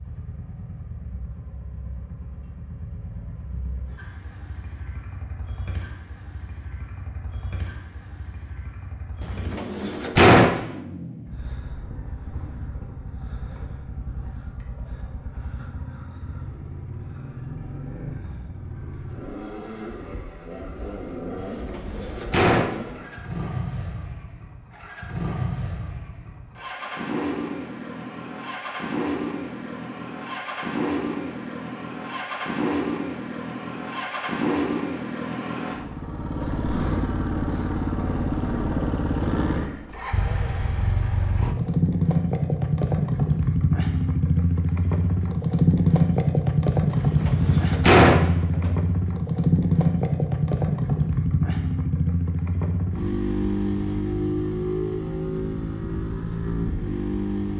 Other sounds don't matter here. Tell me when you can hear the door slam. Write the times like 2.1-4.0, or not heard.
9.2-10.7, 21.4-23.1, 46.9-48.7.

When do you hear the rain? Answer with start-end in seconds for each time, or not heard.
not heard.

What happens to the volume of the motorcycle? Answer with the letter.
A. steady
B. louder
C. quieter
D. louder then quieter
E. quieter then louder
B.